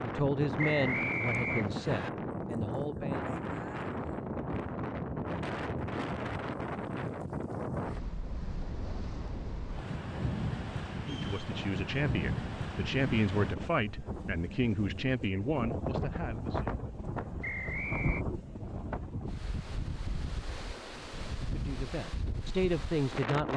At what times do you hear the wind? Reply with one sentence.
The wind can be heard from 0.0 to 23.5 s.